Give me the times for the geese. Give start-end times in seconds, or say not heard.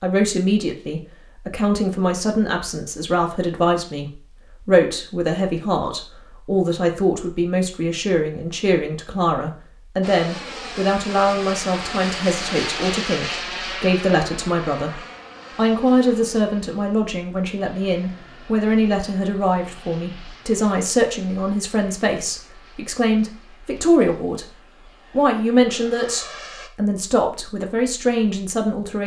not heard.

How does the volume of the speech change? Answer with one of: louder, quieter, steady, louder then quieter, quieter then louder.
steady.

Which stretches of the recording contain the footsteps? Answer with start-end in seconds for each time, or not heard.
not heard.